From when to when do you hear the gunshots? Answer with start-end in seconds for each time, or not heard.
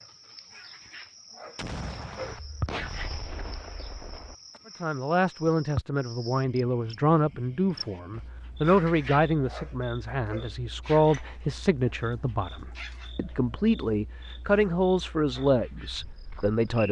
1.6-4.6.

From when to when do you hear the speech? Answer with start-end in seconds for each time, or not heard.
4.8-16.8.